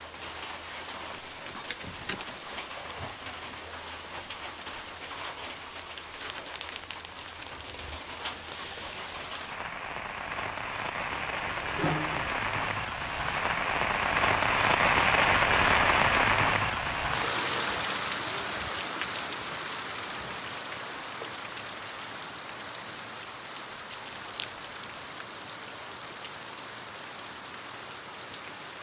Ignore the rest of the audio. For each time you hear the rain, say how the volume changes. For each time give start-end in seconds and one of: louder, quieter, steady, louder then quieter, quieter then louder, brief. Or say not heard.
0.0-28.7 louder then quieter.